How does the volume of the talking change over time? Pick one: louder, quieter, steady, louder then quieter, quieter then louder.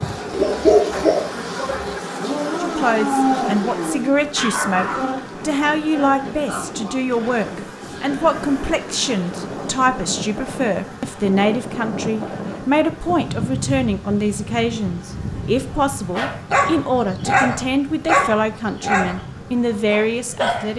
steady.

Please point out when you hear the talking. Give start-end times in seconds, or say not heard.
2.6-20.7.